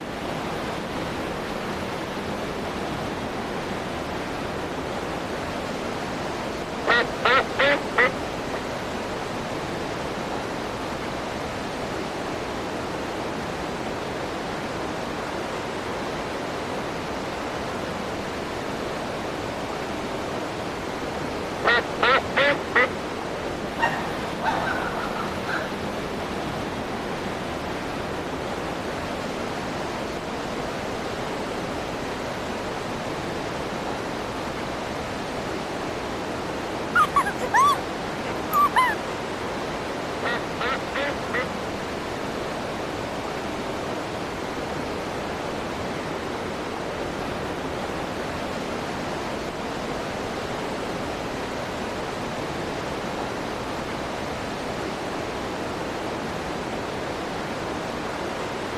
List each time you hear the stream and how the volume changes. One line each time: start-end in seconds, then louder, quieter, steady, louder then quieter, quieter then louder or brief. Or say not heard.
0.0-58.7 steady.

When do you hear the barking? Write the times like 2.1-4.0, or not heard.
23.8-25.7, 37.0-39.0.